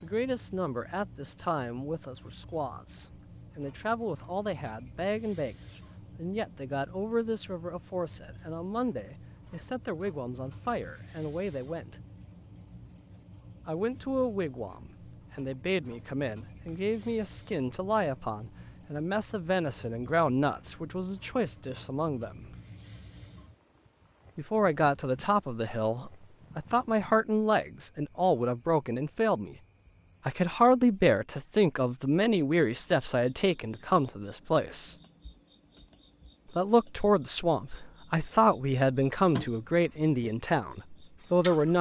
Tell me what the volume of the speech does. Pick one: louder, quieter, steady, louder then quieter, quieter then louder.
louder.